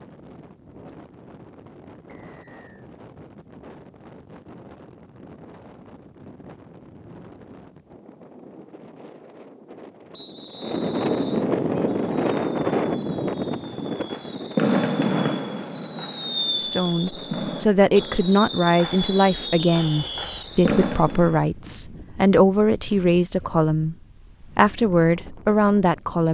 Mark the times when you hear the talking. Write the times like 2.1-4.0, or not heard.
16.6-26.3.